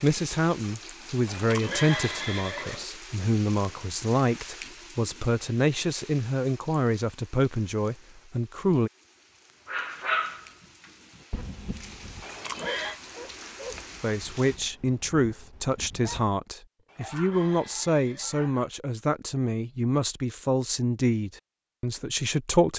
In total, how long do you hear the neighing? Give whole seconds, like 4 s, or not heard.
4 s.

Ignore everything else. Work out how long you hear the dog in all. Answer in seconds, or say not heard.
9 s.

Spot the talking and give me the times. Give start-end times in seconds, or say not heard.
0.0-8.9, 14.0-22.7.